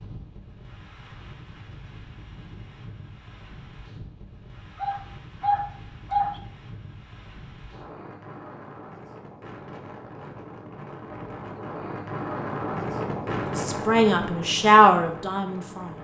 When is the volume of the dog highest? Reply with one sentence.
The volume of the dog peaks at 6 seconds.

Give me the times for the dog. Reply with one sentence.
The dog can be heard from 4.8 to 6.4 s.